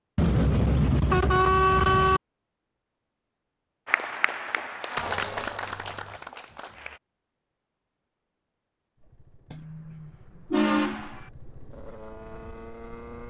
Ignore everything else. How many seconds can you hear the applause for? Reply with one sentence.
You can hear the applause for 3 seconds altogether.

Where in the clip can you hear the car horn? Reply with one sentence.
The car horn can be heard from 0.1 to 2.2 s, from 5.0 to 6.2 s and from 9.5 to 11.2 s.